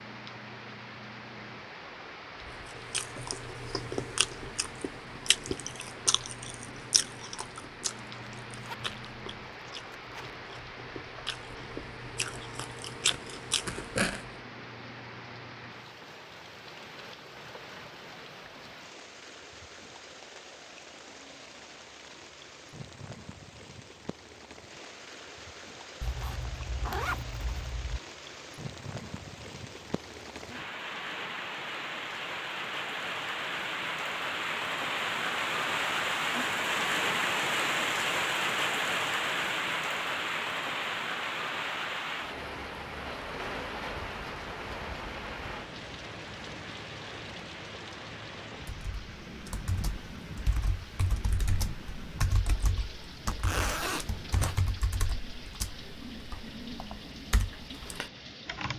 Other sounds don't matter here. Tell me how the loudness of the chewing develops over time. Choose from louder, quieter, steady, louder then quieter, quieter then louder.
quieter then louder.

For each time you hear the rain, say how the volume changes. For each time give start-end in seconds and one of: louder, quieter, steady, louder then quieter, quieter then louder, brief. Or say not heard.
0.0-58.7 louder then quieter.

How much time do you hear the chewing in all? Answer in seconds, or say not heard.
12 s.